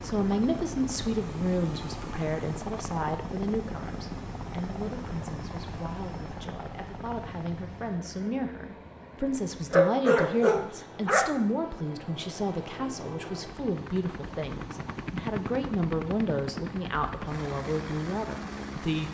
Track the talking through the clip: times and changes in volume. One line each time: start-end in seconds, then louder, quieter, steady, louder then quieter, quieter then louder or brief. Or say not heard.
0.0-19.0 quieter then louder.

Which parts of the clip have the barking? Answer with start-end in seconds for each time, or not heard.
9.7-11.3.